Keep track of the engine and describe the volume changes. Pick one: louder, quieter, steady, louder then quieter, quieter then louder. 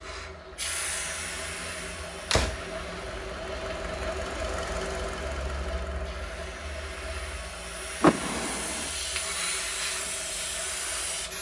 louder then quieter.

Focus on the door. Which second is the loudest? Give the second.
8 s.